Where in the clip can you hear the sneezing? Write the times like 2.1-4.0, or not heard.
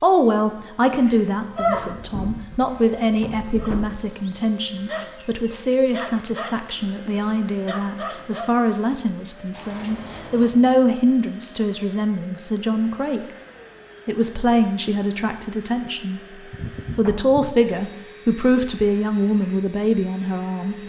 0.8-2.0, 16.5-17.8.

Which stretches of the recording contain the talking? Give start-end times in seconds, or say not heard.
0.0-13.2, 14.1-16.2, 16.9-20.8.